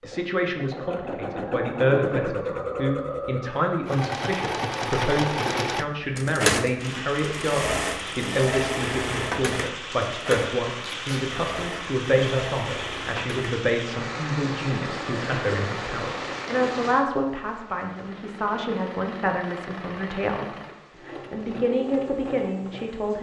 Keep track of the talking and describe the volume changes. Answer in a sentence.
The volume of the talking stays about the same.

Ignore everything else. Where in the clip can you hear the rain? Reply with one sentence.
The rain can be heard from 6.8 to 23.1 s.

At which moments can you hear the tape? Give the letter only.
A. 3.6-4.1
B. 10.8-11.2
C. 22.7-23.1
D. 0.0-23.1
B.